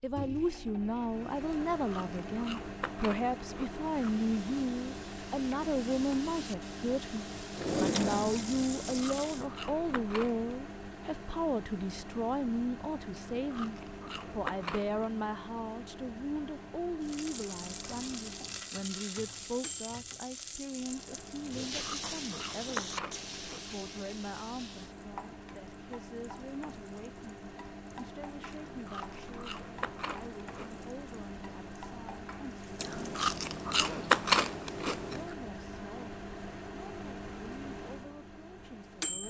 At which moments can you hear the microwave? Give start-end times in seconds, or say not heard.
0.0-39.2.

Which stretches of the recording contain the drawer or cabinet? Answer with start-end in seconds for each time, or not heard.
7.5-8.8.